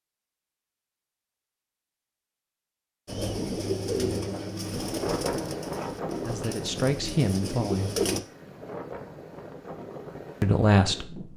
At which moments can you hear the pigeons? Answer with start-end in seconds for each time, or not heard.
3.0-8.2.